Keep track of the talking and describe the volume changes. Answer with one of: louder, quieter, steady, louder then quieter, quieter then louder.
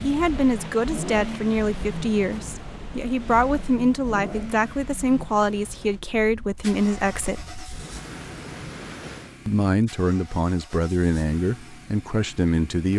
steady.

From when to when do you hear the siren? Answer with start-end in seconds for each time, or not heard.
not heard.